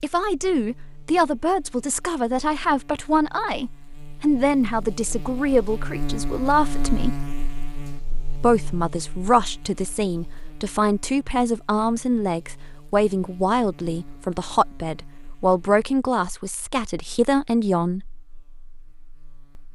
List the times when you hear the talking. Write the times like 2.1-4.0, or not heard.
0.0-7.2, 8.3-18.1.